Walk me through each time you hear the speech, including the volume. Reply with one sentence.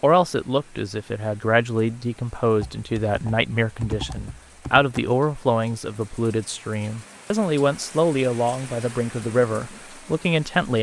You can hear the speech from 0.0 to 10.7 s, at a steady volume.